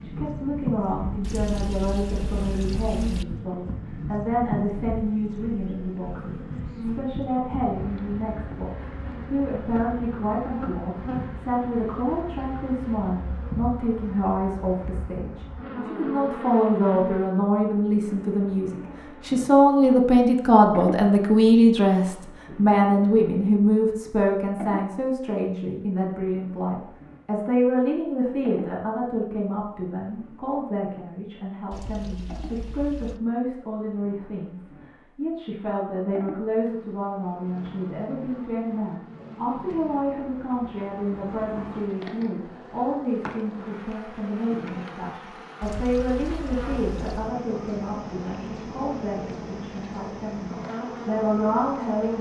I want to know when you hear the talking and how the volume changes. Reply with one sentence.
The talking can be heard from 0.0 to 52.1 s, getting louder then quieter.